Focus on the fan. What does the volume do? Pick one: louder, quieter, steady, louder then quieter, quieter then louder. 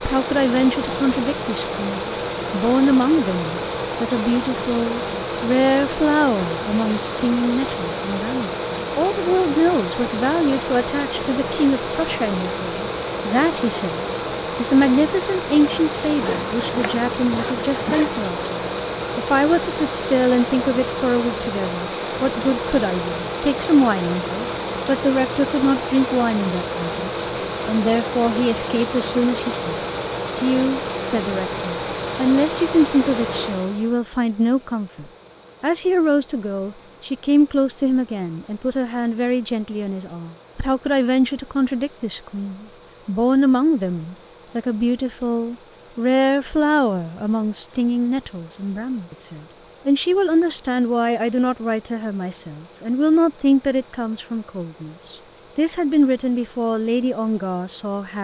quieter.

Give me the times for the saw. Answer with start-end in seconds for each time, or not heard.
16.1-18.1.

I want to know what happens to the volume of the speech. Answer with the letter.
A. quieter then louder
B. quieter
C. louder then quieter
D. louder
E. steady
E.